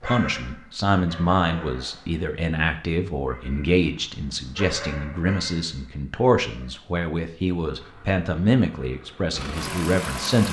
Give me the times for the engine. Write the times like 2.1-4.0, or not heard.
7.7-10.4.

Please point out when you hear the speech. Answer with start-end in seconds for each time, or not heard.
0.0-10.4.